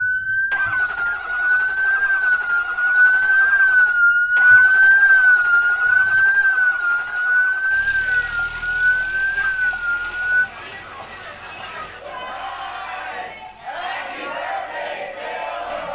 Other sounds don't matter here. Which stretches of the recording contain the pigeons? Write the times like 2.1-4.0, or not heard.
not heard.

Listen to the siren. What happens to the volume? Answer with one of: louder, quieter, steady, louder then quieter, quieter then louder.
louder then quieter.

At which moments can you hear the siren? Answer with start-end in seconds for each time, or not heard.
0.0-10.5.